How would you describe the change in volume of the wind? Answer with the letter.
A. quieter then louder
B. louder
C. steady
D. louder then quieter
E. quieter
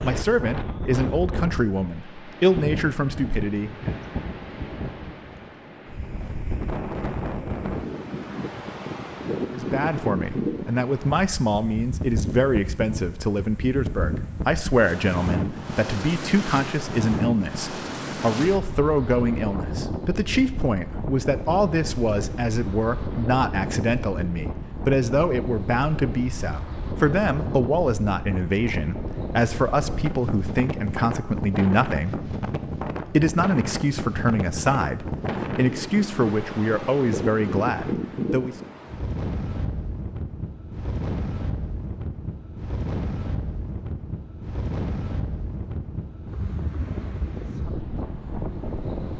C.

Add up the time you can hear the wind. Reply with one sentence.
The wind can be heard for 49 seconds in total.